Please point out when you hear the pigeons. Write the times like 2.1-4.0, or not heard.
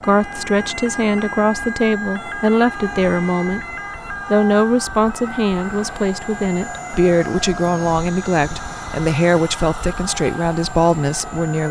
not heard.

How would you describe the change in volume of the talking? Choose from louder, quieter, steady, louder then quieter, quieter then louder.
steady.